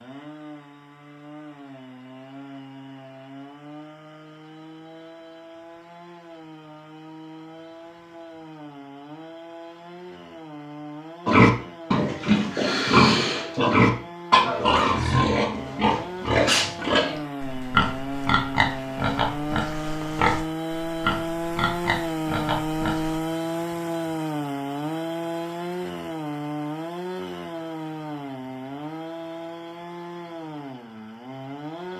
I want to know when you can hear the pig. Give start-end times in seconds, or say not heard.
11.2-23.2.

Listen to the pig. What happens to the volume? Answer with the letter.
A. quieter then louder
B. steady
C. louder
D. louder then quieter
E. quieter
E.